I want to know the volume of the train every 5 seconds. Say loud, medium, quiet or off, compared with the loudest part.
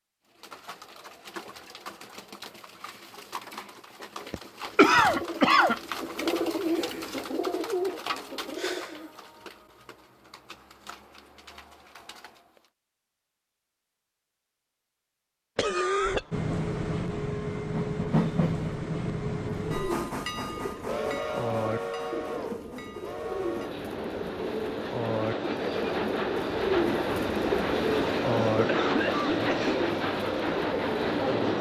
off, off, off, loud, medium, loud, loud.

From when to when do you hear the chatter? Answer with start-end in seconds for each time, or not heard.
not heard.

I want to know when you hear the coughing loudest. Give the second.
5 s.